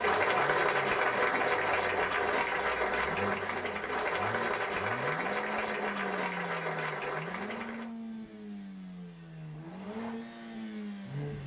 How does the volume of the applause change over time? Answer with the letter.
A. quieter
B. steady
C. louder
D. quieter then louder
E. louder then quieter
A.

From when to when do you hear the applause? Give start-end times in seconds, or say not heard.
0.0-7.9.